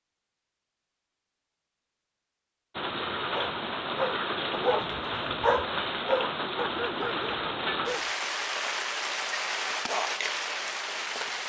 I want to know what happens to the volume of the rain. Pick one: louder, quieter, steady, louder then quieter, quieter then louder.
steady.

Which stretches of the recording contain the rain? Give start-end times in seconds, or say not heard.
2.8-11.4.